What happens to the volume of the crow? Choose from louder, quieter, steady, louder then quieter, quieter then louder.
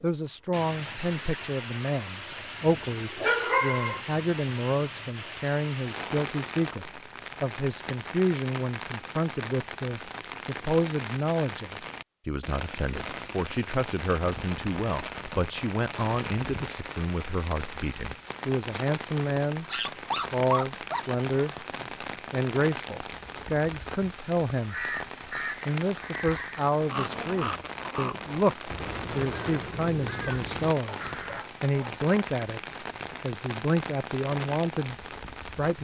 steady.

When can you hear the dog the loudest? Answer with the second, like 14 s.
3 s.